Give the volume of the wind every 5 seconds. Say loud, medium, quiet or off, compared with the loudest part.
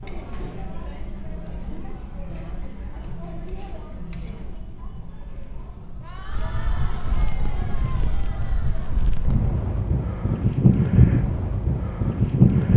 quiet, quiet, loud.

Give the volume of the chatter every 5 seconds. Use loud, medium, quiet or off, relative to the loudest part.
loud, loud, off.